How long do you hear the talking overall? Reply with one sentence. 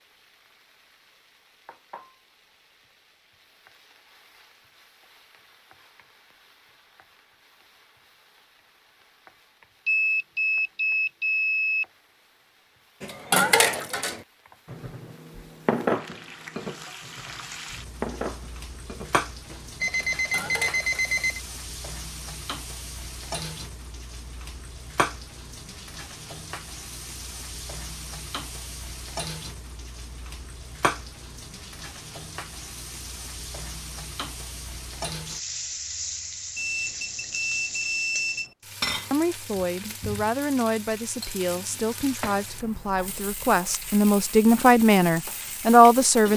The talking can be heard for 7 seconds in total.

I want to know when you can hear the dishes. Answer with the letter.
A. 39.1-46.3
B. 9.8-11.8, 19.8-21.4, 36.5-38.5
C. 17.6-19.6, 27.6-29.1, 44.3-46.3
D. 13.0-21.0
D.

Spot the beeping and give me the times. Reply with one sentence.
The beeping can be heard from 9.8 to 11.8 s, from 19.8 to 21.4 s and from 36.5 to 38.5 s.